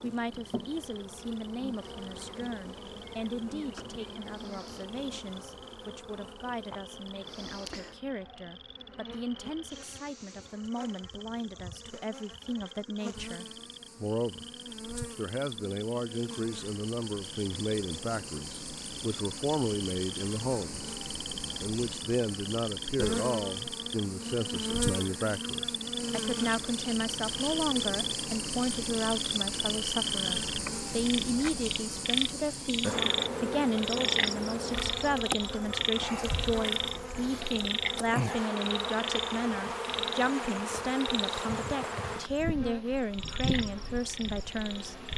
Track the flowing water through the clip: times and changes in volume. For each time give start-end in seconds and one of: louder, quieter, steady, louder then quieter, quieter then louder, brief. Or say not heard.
not heard.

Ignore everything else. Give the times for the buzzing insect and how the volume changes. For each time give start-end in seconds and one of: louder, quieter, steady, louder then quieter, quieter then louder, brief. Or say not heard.
0.0-45.1 louder.